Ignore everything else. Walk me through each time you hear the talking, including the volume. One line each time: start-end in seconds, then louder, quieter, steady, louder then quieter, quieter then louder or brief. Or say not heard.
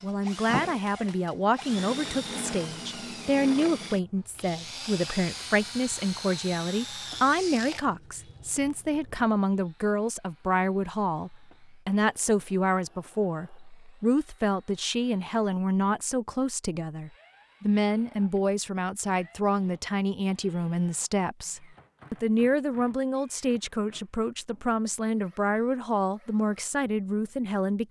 0.0-27.8 steady.